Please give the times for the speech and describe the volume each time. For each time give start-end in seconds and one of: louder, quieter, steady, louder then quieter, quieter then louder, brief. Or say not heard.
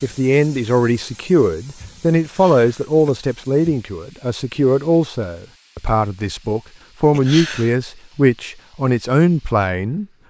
0.0-10.1 steady.